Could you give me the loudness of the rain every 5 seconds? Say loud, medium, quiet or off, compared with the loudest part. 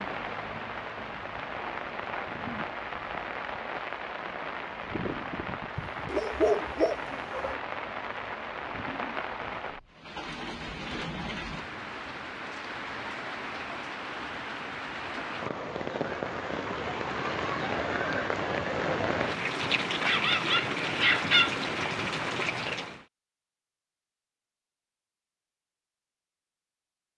medium, medium, medium, loud, loud, off.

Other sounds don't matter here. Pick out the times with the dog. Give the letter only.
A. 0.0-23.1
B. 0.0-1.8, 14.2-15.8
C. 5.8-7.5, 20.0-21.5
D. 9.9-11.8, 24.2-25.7
C.